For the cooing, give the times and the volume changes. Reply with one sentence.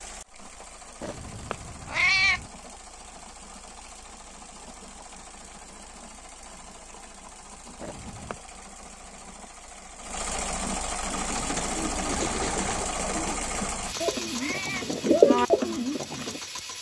You can hear the cooing from 11.1 to 16.4 s, getting louder.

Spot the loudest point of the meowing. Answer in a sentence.
The volume of the meowing peaks at 2 seconds.